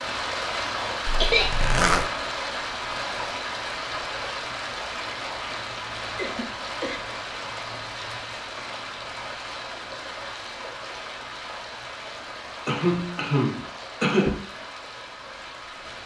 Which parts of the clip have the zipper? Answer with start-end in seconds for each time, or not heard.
1.1-2.1.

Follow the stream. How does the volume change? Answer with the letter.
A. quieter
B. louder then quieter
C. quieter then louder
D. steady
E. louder
A.